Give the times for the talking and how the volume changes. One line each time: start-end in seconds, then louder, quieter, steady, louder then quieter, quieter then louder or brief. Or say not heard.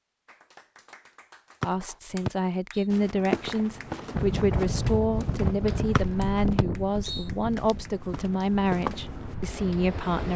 1.6-10.3 steady.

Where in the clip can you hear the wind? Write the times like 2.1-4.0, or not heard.
4.1-10.3.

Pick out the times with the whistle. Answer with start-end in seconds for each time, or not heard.
1.6-2.9, 6.0-7.2.